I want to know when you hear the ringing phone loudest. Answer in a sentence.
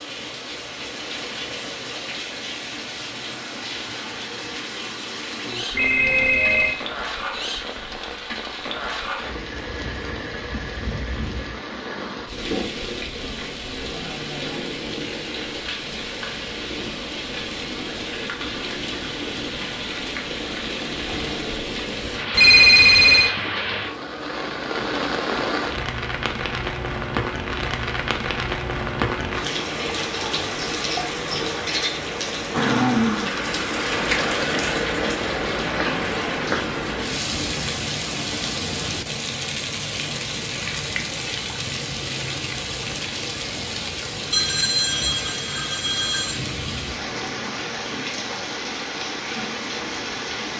The loudest moment of the ringing phone is at 23 seconds.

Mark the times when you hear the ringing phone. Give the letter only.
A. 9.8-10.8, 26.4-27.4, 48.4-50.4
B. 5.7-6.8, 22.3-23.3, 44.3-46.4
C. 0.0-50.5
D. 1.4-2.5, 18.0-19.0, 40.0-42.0
B.